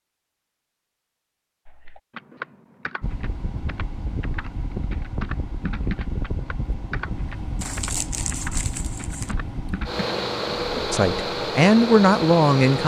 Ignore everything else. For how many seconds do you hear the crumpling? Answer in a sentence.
You can hear the crumpling for 2 seconds altogether.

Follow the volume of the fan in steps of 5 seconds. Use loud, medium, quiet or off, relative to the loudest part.
medium, medium, loud.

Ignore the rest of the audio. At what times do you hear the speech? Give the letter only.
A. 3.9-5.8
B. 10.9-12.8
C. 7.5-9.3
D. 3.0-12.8
B.